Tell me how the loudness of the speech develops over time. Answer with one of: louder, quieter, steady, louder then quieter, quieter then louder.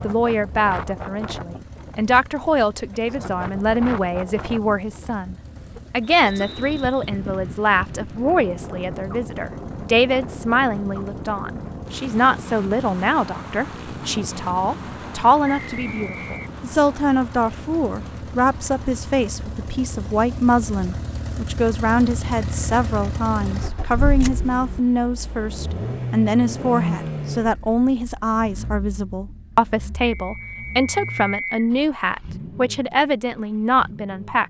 steady.